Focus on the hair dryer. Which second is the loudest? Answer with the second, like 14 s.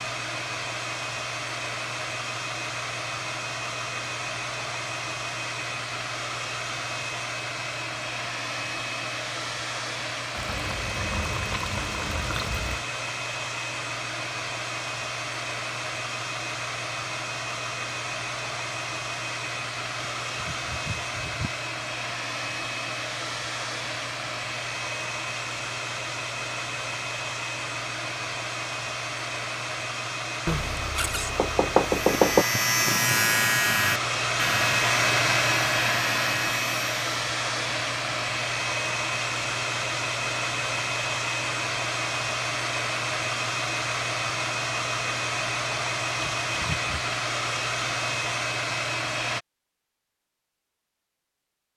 35 s.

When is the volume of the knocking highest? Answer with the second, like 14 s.
32 s.